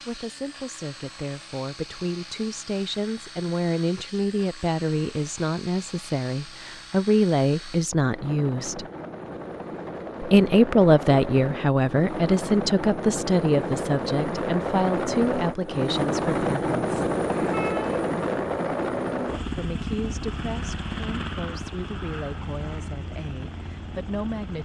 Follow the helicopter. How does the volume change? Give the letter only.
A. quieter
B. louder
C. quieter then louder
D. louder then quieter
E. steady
D.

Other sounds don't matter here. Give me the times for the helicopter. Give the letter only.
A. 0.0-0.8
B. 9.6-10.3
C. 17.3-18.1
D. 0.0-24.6
D.